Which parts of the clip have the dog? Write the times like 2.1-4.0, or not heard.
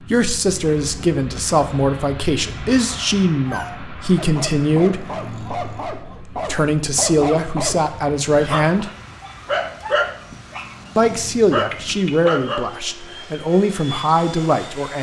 3.4-12.7.